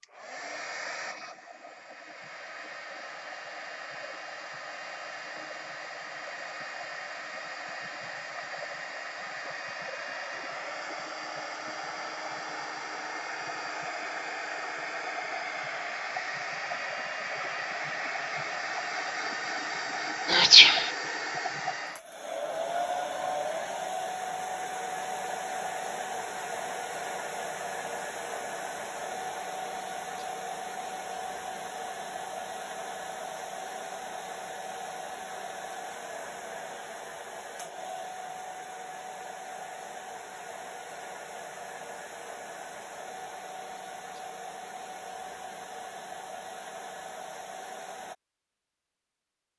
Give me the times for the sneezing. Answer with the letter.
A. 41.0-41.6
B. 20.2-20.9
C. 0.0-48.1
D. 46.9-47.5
B.